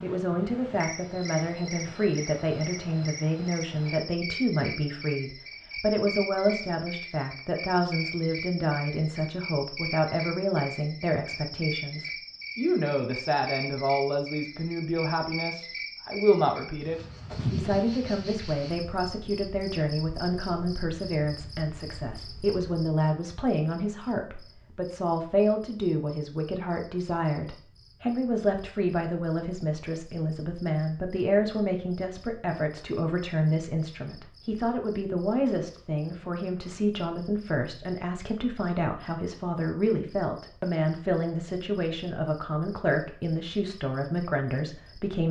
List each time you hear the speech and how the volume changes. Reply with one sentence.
You can hear the speech from 0.0 to 45.2 s, at a steady volume.